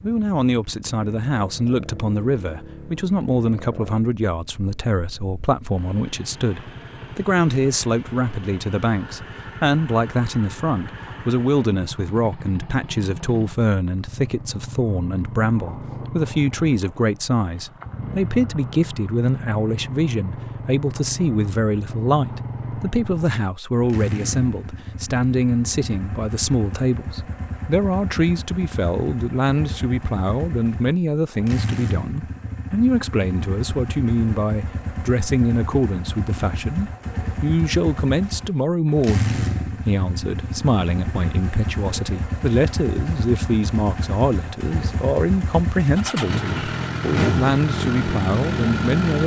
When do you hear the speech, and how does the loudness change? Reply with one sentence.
You can hear the speech from 0.0 to 49.2 s, at a steady volume.